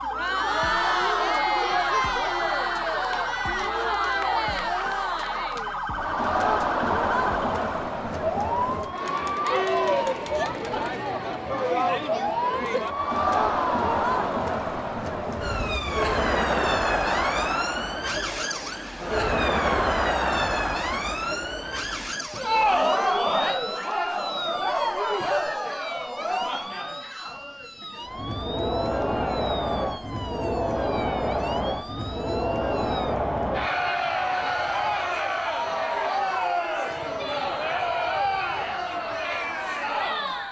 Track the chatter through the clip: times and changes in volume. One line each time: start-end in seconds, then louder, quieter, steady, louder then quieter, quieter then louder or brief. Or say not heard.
0.0-40.4 steady.